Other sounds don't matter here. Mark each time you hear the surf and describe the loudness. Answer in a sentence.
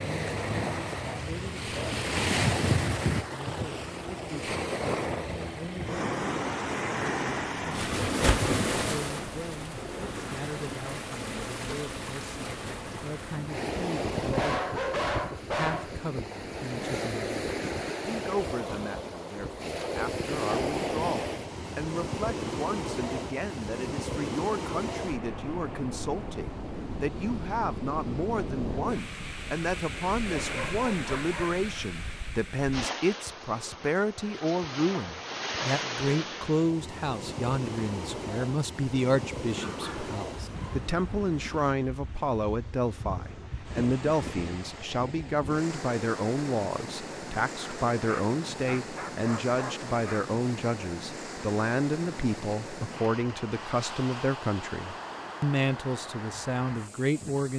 The surf can be heard from 0.0 to 57.5 s, getting quieter.